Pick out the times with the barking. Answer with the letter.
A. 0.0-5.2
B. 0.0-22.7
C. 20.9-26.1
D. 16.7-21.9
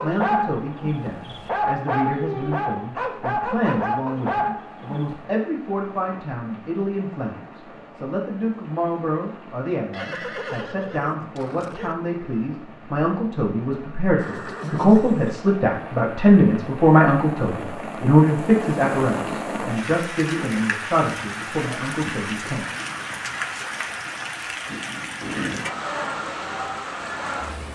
A.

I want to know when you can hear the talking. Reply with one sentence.
The talking can be heard from 0.0 to 22.7 s.